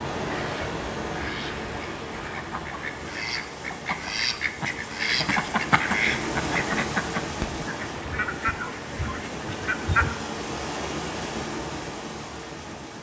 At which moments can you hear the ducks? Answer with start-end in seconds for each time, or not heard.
0.1-10.2.